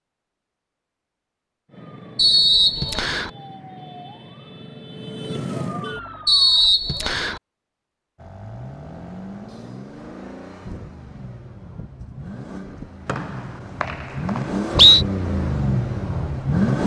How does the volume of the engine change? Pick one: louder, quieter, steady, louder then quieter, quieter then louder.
louder.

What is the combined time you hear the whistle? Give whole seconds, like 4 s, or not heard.
4 s.